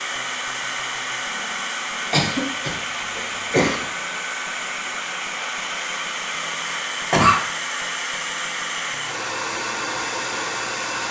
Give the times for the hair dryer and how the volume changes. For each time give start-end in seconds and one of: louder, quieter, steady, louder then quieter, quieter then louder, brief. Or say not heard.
0.0-11.0 steady.